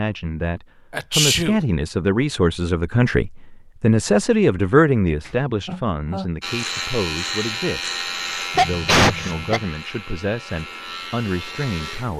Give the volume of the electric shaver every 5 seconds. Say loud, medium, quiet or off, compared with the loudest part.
off, loud, medium.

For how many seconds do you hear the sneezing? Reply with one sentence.
The sneezing can be heard for 3 seconds in total.